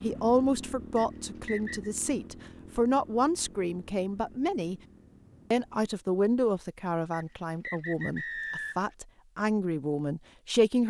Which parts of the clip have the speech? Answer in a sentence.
You can hear the speech from 0.0 to 4.8 s and from 5.5 to 10.8 s.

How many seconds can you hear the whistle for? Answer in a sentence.
The whistle can be heard for 3 seconds in total.